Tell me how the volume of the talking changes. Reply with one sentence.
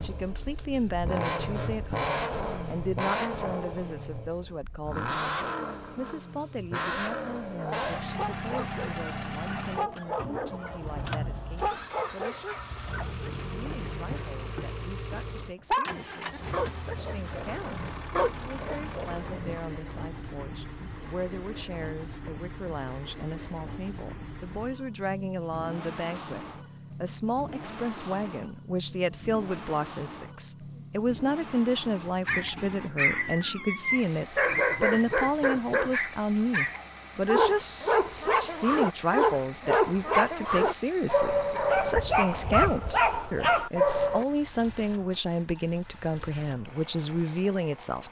The volume of the talking goes down, then up.